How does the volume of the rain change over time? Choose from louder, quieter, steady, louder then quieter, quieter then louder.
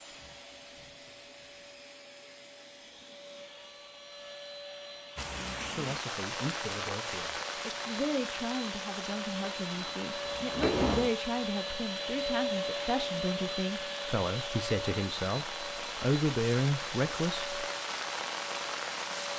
quieter then louder.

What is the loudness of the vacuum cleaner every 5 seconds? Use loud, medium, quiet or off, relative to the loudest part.
quiet, medium, loud, medium.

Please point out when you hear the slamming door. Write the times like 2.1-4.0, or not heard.
9.8-11.1.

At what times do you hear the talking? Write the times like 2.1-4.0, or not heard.
5.8-17.6.